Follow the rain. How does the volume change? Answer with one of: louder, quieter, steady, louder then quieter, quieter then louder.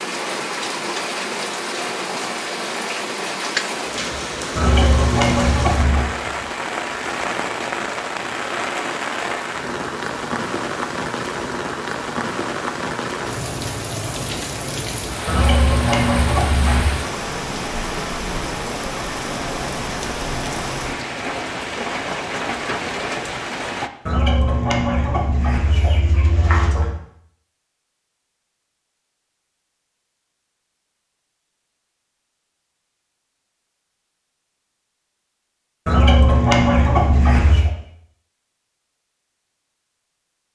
steady.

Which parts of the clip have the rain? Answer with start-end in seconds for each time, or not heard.
0.0-23.9.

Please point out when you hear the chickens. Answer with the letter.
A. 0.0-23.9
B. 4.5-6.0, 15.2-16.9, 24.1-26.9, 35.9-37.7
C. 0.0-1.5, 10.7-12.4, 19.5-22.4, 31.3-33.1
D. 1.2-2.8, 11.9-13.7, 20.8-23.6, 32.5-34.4
B.